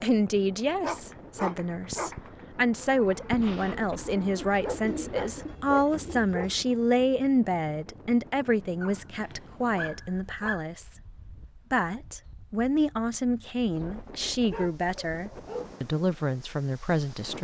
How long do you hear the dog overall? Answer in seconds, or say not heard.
7 s.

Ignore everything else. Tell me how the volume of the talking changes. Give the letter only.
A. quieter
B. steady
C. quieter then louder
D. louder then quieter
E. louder
B.